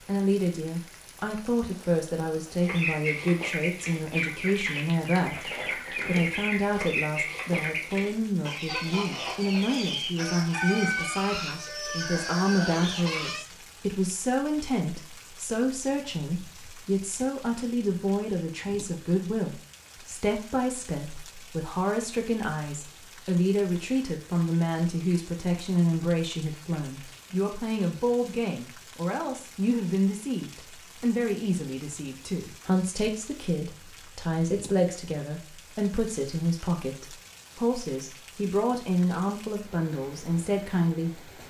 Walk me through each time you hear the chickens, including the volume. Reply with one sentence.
You can hear the chickens from 2.6 to 13.4 s, at a steady volume.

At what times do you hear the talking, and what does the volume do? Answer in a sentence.
You can hear the talking from 0.1 to 41.4 s, at a steady volume.